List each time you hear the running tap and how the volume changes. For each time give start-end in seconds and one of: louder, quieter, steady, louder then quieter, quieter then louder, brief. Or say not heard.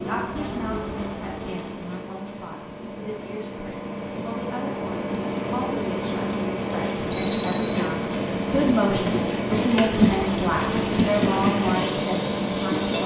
0.0-13.0 louder.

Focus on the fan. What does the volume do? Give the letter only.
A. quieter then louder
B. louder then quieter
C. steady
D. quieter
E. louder
E.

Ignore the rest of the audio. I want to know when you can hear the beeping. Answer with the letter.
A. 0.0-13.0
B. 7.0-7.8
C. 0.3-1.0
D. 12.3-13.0
B.